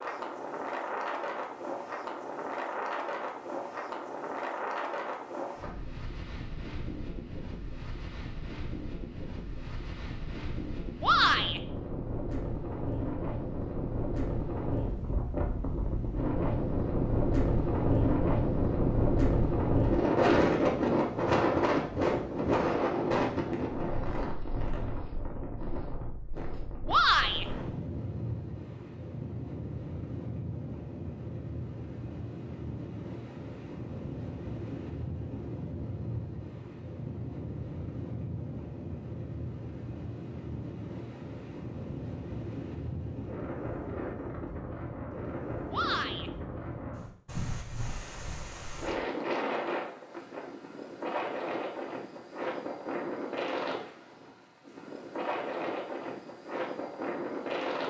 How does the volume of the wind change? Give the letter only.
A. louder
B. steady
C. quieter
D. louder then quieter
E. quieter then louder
D.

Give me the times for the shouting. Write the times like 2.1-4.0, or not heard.
11.0-11.6, 26.9-27.4, 45.7-46.3.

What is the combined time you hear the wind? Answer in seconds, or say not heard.
58 s.